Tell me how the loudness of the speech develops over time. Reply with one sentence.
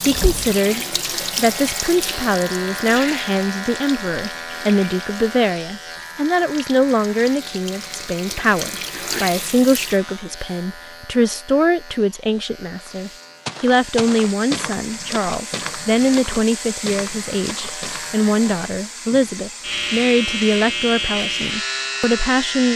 The volume of the speech stays about the same.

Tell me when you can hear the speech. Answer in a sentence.
You can hear the speech from 0.0 to 22.7 s.